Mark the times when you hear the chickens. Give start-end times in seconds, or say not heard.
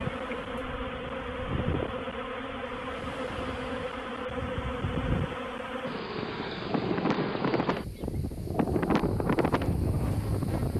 not heard.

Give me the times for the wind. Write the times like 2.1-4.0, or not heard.
0.0-10.7.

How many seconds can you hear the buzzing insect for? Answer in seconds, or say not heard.
11 s.